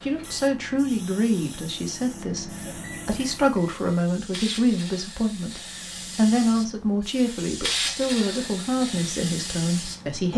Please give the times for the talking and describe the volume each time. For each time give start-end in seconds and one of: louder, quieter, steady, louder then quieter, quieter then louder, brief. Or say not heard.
0.0-10.3 steady.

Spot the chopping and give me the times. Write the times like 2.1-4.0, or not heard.
not heard.